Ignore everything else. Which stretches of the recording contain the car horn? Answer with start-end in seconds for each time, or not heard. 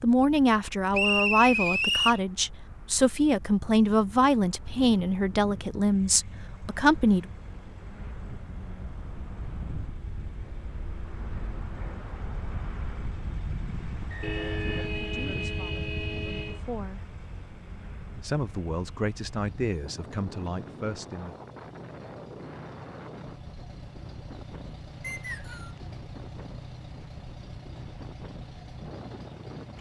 14.2-16.6.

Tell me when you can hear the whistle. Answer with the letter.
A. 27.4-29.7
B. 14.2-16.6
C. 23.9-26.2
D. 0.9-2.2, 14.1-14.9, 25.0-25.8
D.